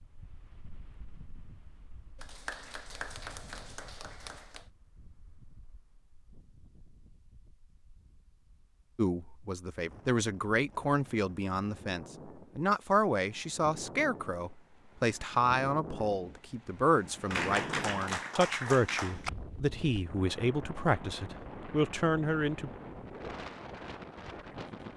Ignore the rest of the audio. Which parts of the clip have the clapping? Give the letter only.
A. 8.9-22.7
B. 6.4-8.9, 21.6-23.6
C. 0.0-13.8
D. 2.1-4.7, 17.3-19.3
D.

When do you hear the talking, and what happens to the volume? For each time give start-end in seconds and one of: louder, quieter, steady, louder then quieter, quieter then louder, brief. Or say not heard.
8.9-22.7 steady.